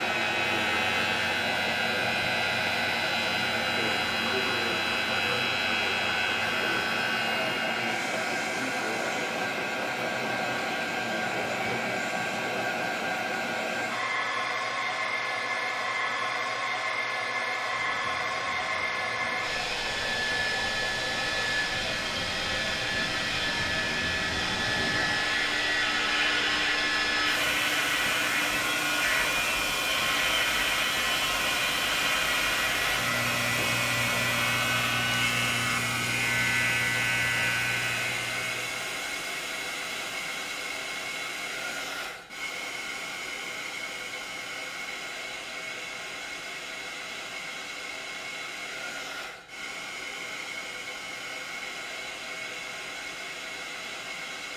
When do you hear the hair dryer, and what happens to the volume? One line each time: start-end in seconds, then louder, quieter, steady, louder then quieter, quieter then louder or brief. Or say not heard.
0.0-54.5 quieter.